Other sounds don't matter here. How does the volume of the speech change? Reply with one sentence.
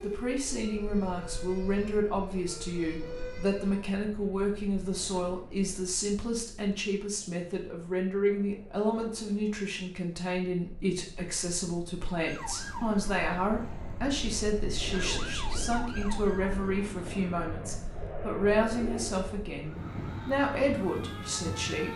The volume of the speech stays about the same.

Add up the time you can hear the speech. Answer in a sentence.
The speech can be heard for 22 seconds in total.